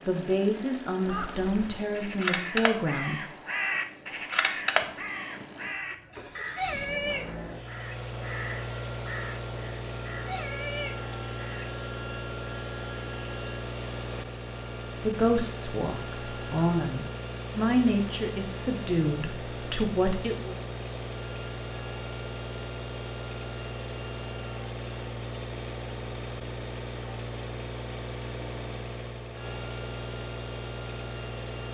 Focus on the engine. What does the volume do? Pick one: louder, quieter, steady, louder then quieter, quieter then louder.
louder.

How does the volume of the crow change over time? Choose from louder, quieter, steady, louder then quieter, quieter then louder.
quieter.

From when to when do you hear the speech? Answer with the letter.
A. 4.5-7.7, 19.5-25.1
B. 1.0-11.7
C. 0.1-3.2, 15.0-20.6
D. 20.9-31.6
C.